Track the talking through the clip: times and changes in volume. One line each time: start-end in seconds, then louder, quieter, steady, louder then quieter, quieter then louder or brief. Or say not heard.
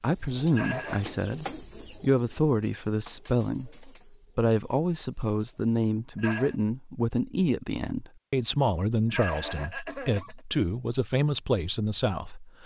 0.0-12.6 steady.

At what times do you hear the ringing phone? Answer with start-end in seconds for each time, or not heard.
not heard.